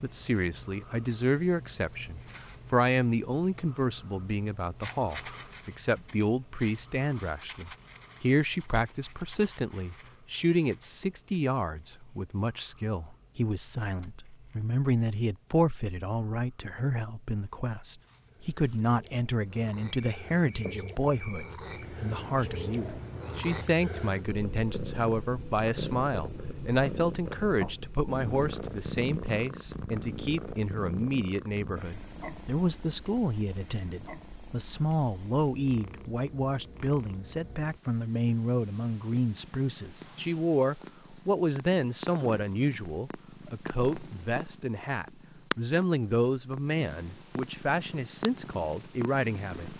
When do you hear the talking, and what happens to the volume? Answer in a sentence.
You can hear the talking from 0.0 to 49.7 s, at a steady volume.